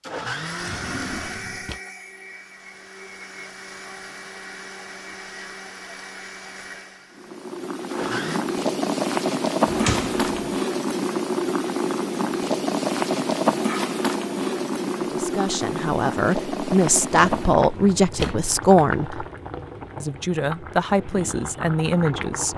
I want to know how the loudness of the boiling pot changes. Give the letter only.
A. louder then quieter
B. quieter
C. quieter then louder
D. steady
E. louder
B.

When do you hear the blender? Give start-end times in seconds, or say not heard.
0.0-8.4.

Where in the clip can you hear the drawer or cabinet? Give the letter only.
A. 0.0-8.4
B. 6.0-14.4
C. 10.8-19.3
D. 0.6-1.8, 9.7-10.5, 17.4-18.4
D.